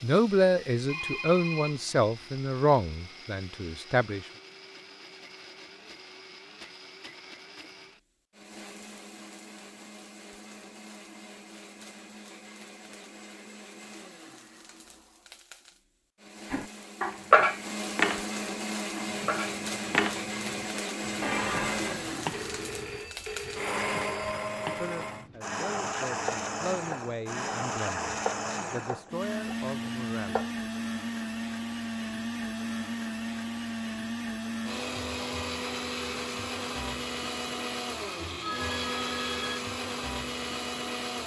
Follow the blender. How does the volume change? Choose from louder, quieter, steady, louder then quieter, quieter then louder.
louder.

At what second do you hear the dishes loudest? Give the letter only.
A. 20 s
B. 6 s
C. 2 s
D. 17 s
D.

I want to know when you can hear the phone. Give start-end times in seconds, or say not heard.
0.8-2.2, 22.3-24.4, 38.4-39.6.